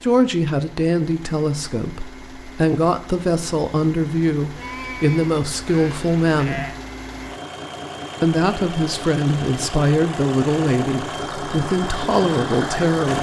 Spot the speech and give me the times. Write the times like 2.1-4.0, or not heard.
0.0-6.8, 8.2-13.1.